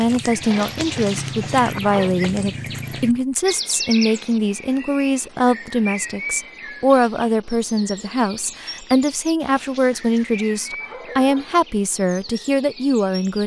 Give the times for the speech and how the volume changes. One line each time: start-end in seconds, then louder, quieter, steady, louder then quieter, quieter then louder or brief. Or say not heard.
0.0-13.4 steady.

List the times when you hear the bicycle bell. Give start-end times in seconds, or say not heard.
not heard.